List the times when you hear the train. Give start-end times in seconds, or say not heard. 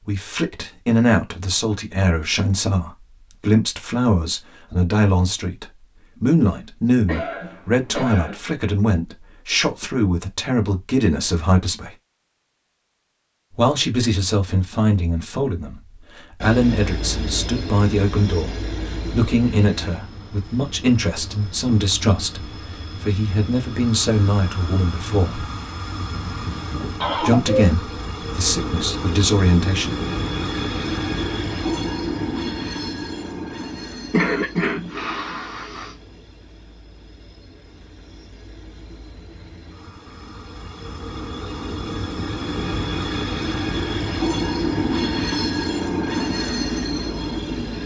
16.4-47.8.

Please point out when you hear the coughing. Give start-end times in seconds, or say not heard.
7.0-8.4, 27.0-27.7, 34.1-36.0.